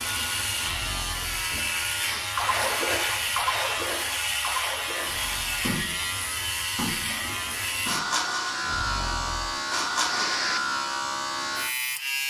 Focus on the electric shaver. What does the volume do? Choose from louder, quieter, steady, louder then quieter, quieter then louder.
steady.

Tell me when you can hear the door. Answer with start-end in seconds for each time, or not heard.
not heard.